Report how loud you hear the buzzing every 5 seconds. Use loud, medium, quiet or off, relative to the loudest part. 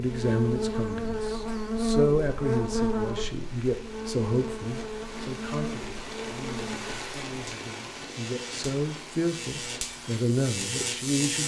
loud, medium, loud.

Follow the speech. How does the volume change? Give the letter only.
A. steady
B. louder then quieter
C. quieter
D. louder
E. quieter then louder
E.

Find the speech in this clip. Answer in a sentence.
You can hear the speech from 0.0 to 11.4 s.